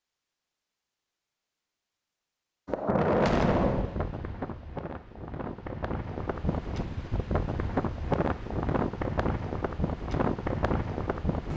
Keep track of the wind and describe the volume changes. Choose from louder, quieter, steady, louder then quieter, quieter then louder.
louder.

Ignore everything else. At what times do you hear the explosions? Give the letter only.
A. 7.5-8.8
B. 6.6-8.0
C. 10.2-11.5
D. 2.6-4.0
D.